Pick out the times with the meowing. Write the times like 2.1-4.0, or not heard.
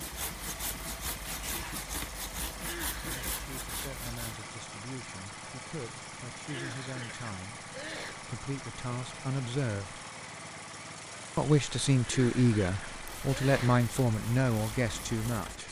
not heard.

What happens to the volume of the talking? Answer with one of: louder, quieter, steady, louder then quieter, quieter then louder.
louder.